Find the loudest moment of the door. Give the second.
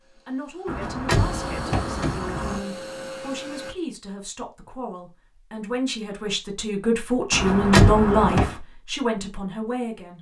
8 s.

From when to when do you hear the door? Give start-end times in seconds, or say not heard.
0.7-2.6, 7.3-8.6.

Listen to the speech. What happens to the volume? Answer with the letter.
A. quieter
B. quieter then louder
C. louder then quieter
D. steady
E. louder
E.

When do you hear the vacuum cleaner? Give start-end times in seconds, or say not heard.
0.0-3.8.